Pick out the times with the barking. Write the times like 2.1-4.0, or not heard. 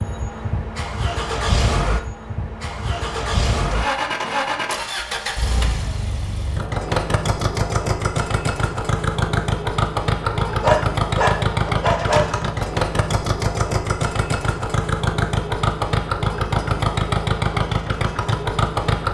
10.4-12.7.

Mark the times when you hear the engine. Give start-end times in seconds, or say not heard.
0.0-19.0.